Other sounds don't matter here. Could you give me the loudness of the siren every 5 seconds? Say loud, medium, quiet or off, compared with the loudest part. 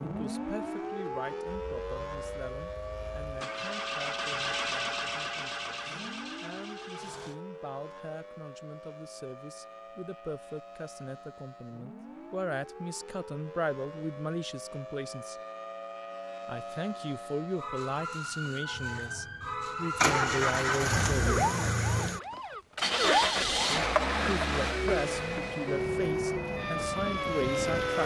medium, quiet, quiet, medium, loud, loud.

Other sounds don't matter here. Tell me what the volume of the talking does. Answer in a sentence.
The volume of the talking goes up.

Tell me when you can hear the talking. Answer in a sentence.
The talking can be heard from 0.0 to 15.3 s, from 16.4 to 21.4 s and from 23.6 to 28.0 s.